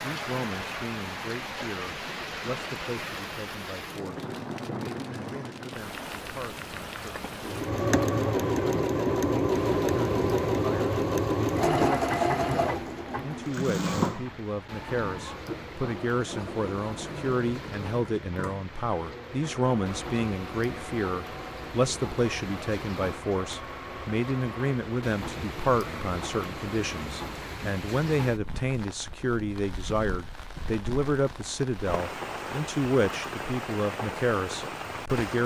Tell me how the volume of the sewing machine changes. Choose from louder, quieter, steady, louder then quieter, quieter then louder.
quieter.